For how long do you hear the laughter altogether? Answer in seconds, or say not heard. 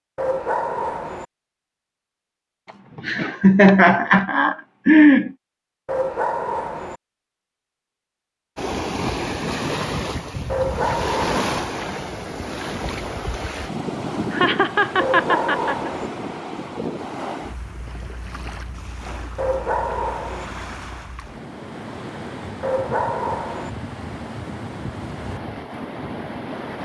4 s.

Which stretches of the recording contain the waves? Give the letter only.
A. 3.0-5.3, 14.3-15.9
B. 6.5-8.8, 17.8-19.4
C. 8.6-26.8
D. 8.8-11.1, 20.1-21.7
C.